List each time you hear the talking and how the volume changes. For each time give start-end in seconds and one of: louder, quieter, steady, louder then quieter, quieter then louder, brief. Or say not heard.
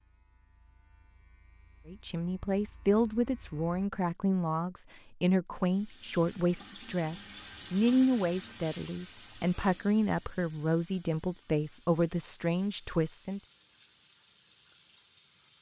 1.9-13.4 steady.